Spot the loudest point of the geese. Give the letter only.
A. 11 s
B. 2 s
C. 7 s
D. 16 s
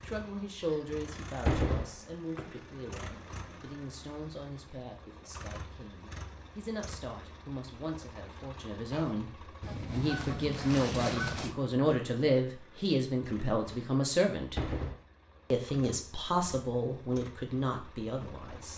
A.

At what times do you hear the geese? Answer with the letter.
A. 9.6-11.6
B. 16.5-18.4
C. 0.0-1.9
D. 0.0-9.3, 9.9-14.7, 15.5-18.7
A.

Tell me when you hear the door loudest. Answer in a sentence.
The volume of the door peaks at 2 seconds.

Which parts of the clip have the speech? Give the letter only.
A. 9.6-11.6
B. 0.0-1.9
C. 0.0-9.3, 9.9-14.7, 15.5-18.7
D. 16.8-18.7
C.